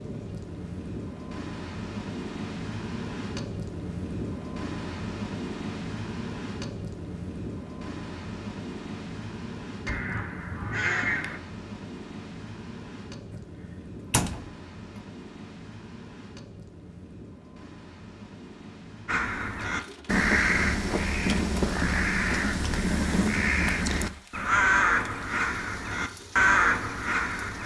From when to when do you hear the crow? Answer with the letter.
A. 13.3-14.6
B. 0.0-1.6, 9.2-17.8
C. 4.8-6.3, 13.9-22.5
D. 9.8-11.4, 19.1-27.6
D.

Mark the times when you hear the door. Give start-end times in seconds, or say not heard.
13.3-14.6.